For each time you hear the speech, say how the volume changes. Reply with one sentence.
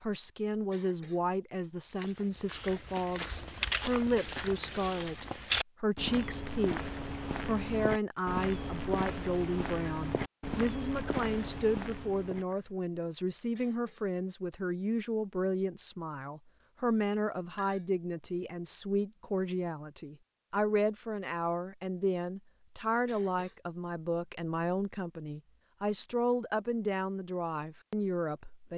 The speech can be heard from 0.0 to 28.7 s, at a steady volume.